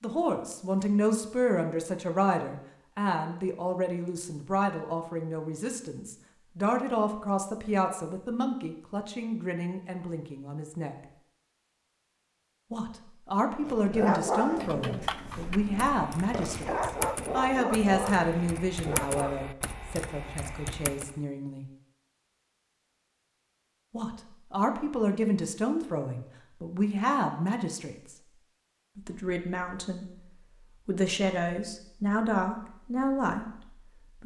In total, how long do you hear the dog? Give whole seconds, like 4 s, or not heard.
6 s.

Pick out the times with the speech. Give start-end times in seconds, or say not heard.
0.0-10.9, 12.7-21.6, 23.9-28.1, 28.9-34.2.